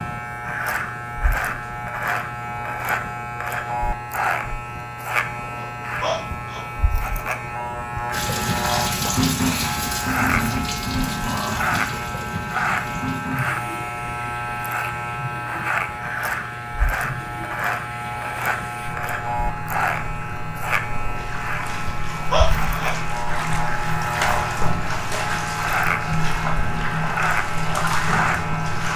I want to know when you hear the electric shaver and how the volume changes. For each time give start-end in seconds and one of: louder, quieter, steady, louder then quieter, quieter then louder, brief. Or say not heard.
0.0-28.9 steady.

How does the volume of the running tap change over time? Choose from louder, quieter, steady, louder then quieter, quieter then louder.
quieter then louder.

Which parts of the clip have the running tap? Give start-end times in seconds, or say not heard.
8.1-28.9.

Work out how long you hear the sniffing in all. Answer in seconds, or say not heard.
2 s.